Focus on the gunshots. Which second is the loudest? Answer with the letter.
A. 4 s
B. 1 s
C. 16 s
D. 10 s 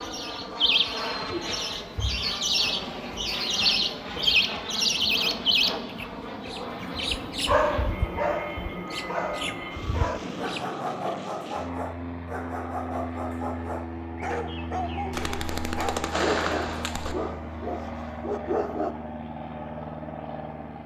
C.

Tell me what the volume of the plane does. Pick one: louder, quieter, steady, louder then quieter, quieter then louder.
steady.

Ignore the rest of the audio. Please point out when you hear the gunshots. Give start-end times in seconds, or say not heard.
15.1-17.1.